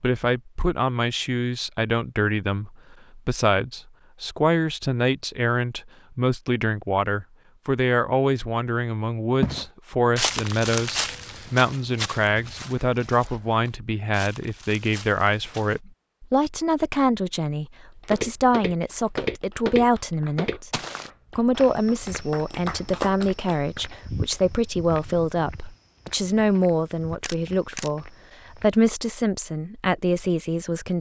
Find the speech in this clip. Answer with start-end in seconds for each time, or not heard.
0.0-30.9.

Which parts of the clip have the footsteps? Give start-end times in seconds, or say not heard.
9.4-15.8, 18.1-28.7.